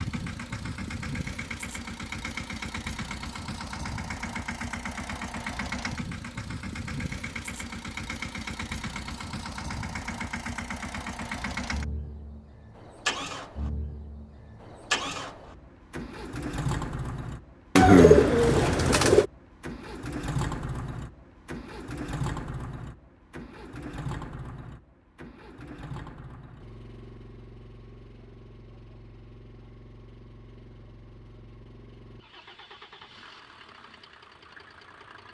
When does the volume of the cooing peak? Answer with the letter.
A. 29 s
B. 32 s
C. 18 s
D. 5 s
C.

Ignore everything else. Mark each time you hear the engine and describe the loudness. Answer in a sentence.
The engine can be heard from 0.0 to 35.2 s, getting quieter.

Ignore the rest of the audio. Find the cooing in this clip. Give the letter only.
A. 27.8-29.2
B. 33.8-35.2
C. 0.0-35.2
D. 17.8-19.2
D.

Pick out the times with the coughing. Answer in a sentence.
You can't hear the coughing here.